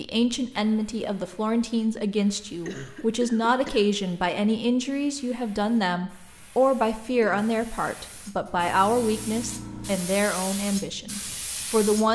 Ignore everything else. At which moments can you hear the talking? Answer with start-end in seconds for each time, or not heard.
0.0-12.0.